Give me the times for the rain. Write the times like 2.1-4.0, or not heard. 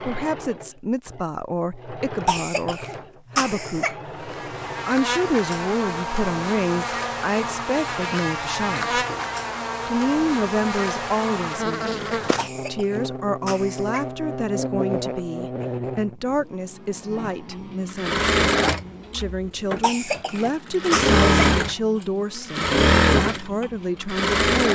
not heard.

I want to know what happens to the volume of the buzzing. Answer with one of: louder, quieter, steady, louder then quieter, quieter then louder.
quieter.